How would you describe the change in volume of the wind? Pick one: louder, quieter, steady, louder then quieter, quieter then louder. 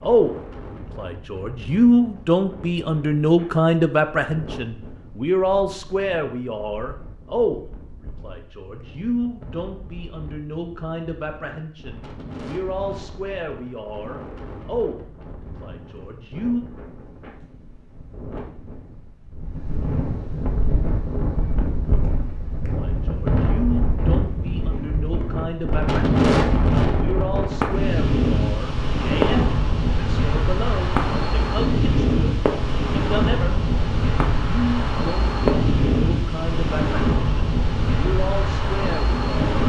louder.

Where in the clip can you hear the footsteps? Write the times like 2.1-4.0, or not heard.
not heard.